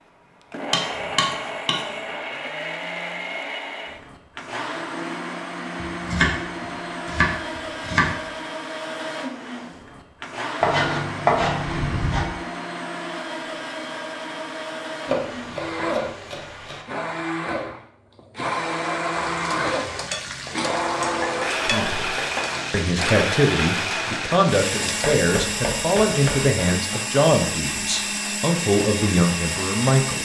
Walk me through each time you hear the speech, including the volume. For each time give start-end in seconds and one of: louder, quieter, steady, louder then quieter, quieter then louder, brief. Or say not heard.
21.6-30.1 steady.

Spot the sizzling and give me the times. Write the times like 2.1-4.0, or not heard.
19.1-25.1.